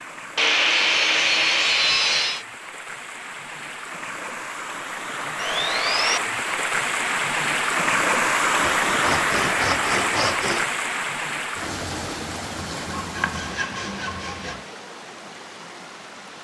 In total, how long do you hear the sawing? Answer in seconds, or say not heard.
7 s.